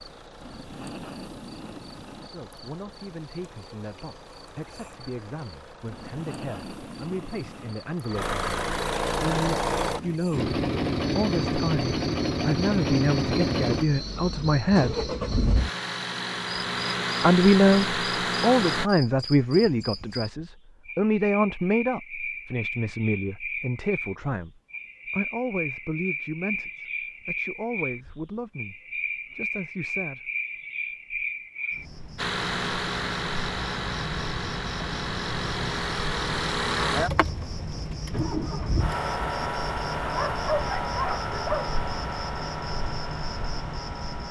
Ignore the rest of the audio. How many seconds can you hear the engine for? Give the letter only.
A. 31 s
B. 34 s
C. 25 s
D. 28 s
A.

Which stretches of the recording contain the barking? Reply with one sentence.
You can hear the barking from 40.0 to 41.8 s.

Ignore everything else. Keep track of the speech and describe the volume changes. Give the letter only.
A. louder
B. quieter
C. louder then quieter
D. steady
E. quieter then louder
C.